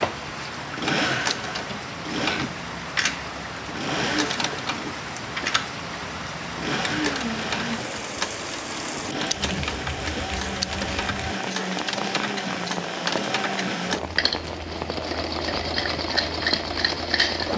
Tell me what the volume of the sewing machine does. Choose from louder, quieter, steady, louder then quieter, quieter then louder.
steady.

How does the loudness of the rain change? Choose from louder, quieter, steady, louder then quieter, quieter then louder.
steady.